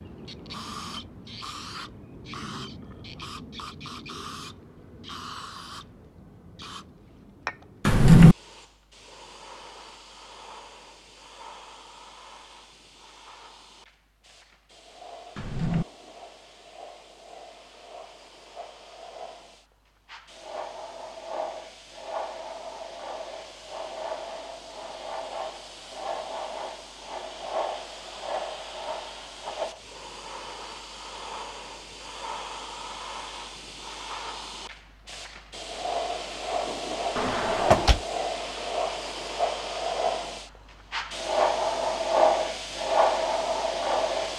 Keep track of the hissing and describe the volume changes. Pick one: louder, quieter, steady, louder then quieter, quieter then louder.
quieter then louder.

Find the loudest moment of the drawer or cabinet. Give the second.
8 s.